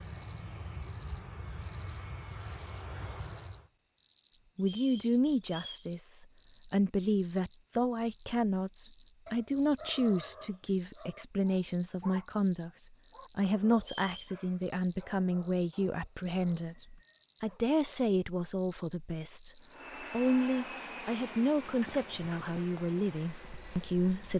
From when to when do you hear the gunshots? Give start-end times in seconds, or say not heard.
not heard.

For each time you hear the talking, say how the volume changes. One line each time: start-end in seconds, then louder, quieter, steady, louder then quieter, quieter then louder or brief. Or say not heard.
4.5-24.3 steady.